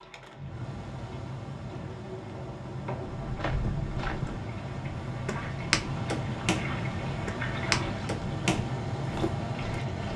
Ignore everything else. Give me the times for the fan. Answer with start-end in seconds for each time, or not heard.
0.0-10.1.